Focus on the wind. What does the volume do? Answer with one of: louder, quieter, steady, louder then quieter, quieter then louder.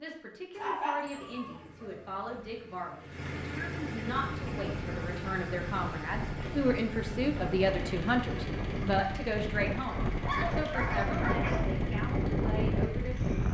louder.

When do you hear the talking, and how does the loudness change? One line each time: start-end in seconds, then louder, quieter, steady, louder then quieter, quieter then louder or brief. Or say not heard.
0.0-13.3 louder then quieter.